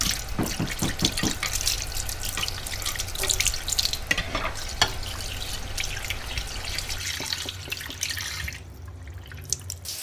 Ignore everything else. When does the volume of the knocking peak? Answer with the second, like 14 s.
1 s.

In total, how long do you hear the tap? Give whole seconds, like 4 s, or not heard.
10 s.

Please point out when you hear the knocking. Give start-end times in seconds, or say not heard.
0.3-1.4, 7.2-8.2.